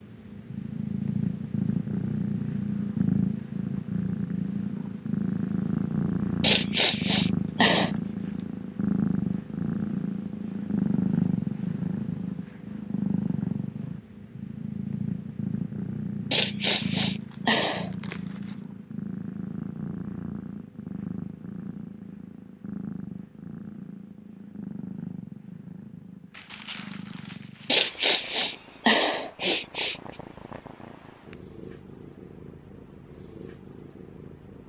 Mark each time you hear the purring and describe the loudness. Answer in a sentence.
You can hear the purring from 0.0 to 34.6 s, getting quieter.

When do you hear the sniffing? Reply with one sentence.
The sniffing can be heard from 6.4 to 7.9 s, from 16.3 to 17.9 s and from 27.6 to 29.9 s.